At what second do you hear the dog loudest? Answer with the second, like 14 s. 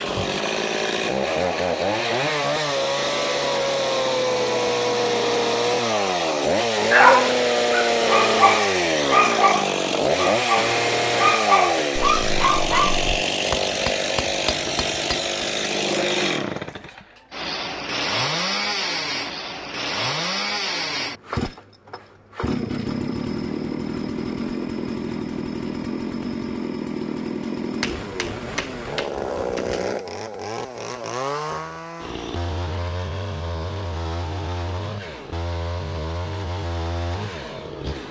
7 s.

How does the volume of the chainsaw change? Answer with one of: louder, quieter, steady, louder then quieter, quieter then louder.
quieter.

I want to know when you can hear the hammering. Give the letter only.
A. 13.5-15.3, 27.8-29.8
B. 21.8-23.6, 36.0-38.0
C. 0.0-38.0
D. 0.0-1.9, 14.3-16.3
A.